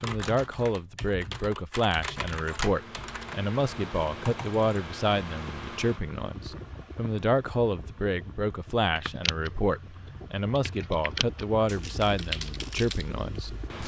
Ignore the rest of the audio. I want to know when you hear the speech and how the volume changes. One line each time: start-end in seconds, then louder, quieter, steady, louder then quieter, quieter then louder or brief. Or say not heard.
0.0-13.8 steady.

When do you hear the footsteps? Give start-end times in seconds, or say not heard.
not heard.